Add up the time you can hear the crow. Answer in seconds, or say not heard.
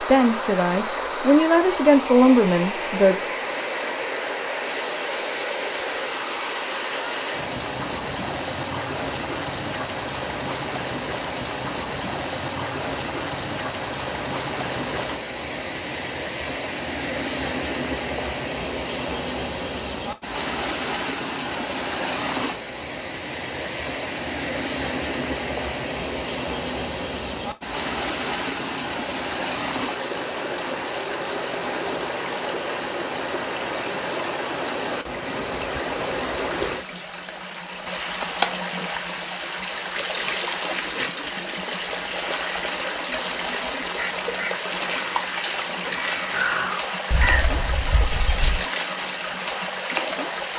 5 s.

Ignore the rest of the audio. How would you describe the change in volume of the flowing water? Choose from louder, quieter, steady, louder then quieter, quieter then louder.
steady.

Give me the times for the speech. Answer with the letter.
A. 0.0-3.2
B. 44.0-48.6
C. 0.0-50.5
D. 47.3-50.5
A.